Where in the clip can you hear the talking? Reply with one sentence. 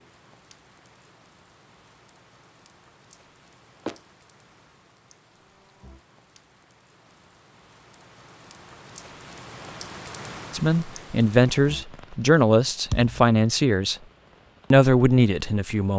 The talking can be heard from 10.5 to 13.9 s and from 14.7 to 15.9 s.